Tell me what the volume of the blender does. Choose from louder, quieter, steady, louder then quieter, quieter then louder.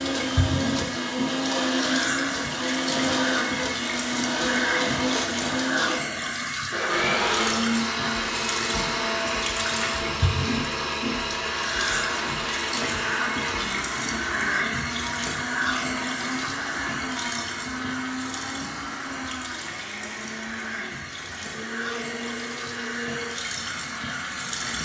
quieter.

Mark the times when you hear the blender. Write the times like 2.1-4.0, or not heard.
0.0-24.8.